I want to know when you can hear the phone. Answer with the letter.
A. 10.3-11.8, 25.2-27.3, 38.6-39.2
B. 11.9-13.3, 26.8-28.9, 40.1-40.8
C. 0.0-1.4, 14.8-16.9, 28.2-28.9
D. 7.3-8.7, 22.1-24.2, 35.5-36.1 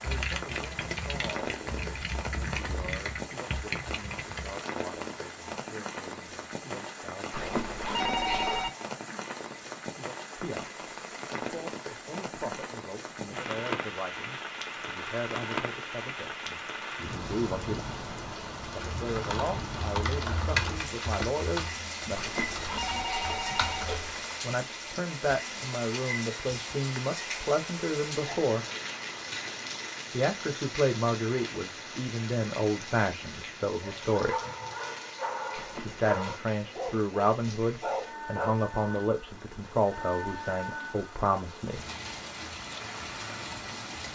D.